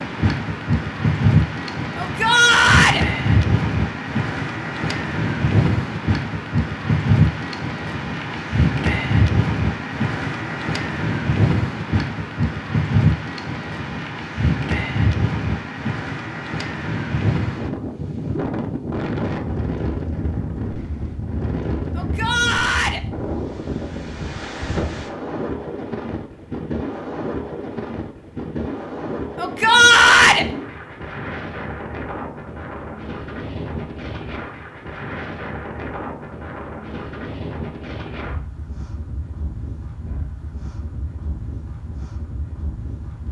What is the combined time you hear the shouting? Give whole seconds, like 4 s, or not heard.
3 s.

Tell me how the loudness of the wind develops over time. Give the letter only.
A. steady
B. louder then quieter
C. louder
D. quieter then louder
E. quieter
E.